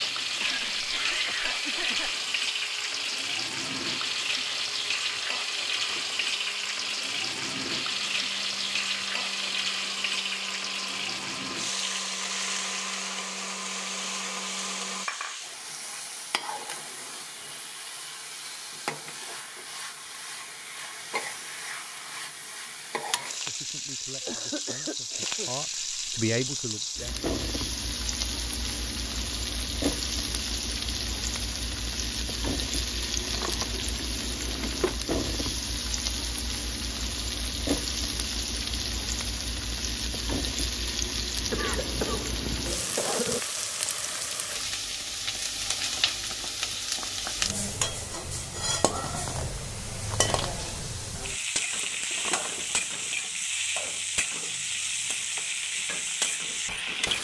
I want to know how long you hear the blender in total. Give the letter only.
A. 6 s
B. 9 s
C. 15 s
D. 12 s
C.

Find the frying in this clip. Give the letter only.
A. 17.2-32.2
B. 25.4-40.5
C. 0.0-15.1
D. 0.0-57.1
D.